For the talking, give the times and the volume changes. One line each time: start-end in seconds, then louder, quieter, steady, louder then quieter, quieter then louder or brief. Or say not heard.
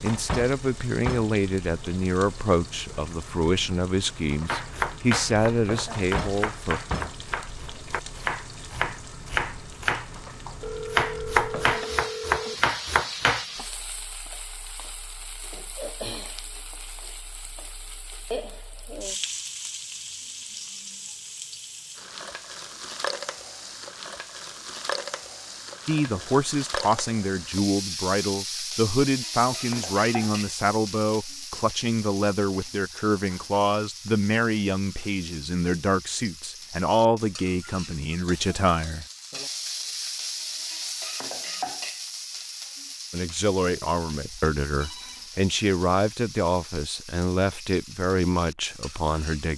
0.0-6.8 steady
25.9-39.0 steady
43.1-49.5 steady.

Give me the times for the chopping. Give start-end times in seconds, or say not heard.
4.5-13.4.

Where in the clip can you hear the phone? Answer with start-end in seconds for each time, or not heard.
10.6-12.6, 44.2-45.2.